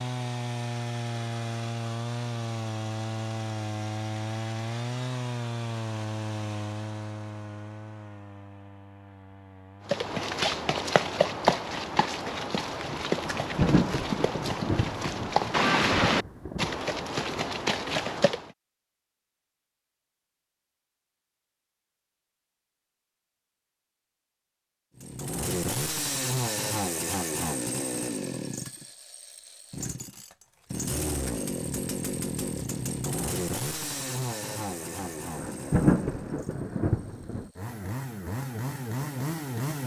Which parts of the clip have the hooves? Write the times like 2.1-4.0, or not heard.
9.8-18.5.